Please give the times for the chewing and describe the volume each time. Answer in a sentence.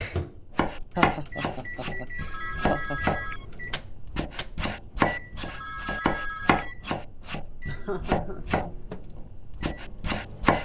The chewing can't be heard in this clip.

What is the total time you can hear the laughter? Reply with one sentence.
The laughter can be heard for 3 seconds in total.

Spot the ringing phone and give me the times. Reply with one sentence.
You can hear the ringing phone from 2.1 to 3.5 s and from 5.5 to 6.8 s.